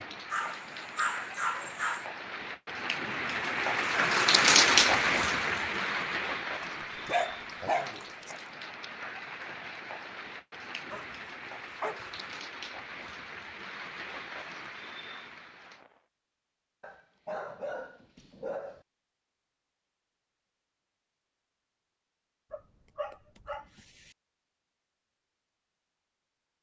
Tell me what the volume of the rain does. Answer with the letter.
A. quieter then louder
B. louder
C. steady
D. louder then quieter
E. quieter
D.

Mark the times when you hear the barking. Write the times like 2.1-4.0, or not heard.
0.3-2.0, 6.6-8.3, 10.9-12.2, 16.8-18.9, 22.5-24.1.